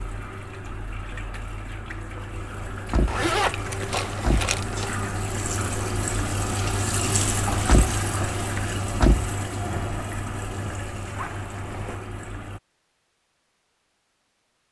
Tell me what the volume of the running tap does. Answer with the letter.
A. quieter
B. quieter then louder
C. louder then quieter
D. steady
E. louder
C.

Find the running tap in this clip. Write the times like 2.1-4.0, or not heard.
0.0-12.6.